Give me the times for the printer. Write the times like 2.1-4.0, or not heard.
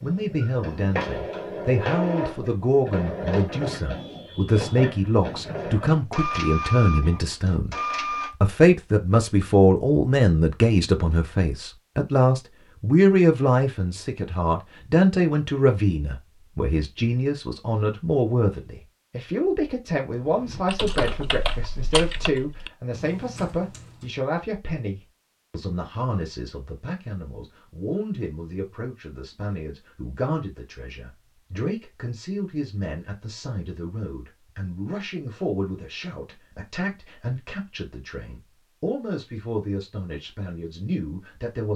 0.0-8.3.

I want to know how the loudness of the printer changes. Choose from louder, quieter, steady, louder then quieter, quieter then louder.
steady.